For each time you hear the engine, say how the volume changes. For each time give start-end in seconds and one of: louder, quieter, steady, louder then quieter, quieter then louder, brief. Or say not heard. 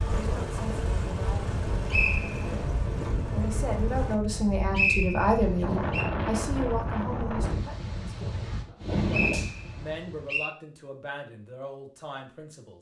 0.0-4.2 steady.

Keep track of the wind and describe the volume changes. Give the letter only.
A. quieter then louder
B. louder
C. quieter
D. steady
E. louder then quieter
B.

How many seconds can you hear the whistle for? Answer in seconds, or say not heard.
4 s.